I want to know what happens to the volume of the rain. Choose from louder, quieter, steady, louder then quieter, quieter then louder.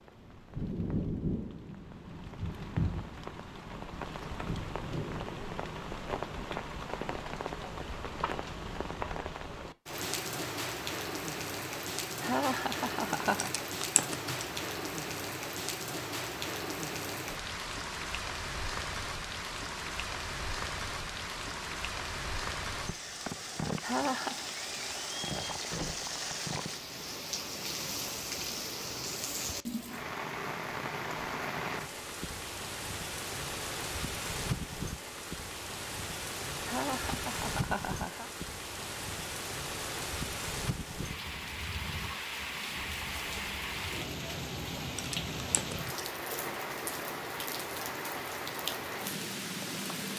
steady.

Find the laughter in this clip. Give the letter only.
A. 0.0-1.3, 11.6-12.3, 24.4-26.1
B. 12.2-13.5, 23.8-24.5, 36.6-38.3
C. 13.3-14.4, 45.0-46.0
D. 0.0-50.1
B.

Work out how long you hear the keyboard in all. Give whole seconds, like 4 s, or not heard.
2 s.